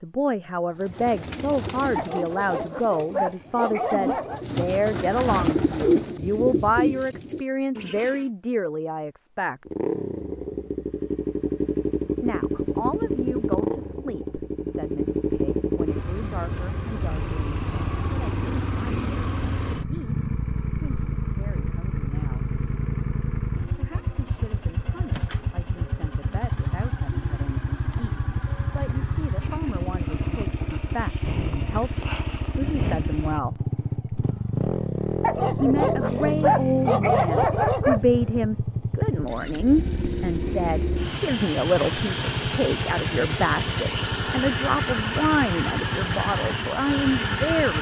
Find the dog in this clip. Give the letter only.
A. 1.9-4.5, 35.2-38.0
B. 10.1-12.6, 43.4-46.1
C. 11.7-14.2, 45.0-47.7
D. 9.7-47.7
A.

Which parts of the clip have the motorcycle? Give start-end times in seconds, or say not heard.
9.7-47.7.